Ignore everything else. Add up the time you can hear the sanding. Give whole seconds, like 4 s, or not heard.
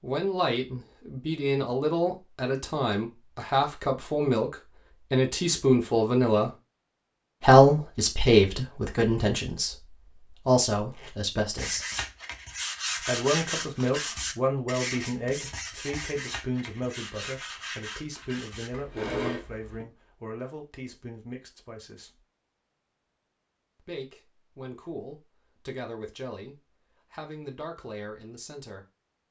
8 s.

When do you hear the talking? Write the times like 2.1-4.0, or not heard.
0.0-6.5, 7.4-11.8, 12.9-22.2, 23.8-28.9.